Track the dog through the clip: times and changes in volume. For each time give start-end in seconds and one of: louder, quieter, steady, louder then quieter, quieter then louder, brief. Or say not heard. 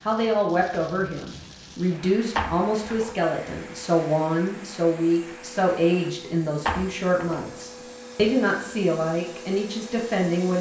not heard.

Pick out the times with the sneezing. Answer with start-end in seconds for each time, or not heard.
not heard.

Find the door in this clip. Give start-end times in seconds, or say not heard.
2.4-3.1, 6.7-7.5.